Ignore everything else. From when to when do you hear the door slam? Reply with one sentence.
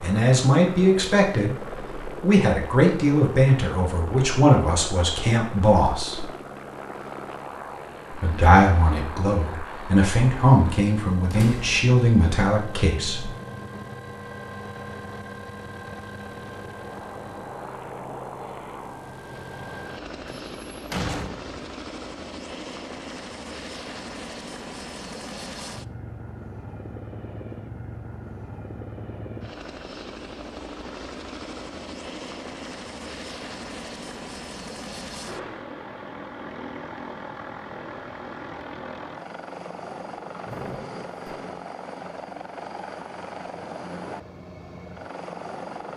You can hear the door slam from 11.3 to 11.8 s, from 20.2 to 21.6 s and from 40.5 to 41.6 s.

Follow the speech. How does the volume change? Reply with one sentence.
The volume of the speech stays about the same.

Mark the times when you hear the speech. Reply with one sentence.
The speech can be heard from 0.0 to 6.2 s and from 8.1 to 13.3 s.